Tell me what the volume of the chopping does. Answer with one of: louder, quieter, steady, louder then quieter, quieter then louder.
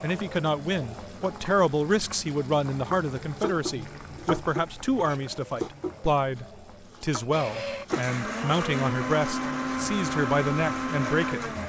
quieter then louder.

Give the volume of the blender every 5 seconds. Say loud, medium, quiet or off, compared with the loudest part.
off, loud, loud.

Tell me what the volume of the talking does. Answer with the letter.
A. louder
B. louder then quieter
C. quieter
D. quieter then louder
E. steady
E.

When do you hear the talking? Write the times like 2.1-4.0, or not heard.
0.0-11.5.